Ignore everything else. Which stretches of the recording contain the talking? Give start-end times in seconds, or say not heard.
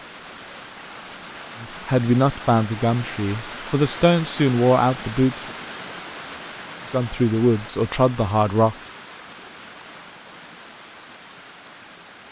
1.6-5.5, 6.9-8.8.